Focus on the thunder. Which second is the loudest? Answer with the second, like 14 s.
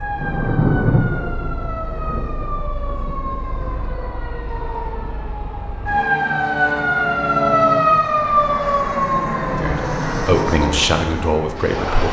1 s.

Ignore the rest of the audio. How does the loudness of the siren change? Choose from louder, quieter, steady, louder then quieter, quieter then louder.
louder then quieter.